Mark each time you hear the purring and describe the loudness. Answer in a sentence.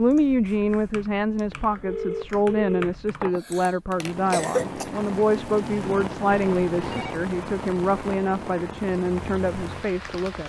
You can't hear the purring here.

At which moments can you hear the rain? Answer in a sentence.
You can hear the rain from 3.9 to 10.4 s.